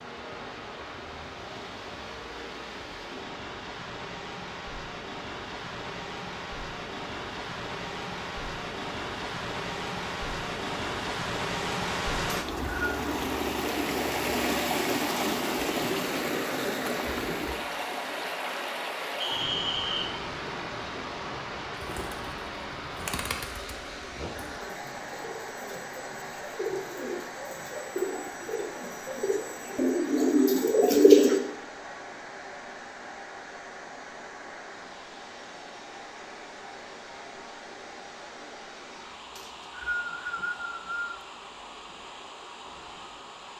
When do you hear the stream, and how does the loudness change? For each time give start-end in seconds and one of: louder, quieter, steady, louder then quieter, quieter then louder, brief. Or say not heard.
0.0-43.5 louder then quieter.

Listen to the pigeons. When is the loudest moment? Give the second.
31 s.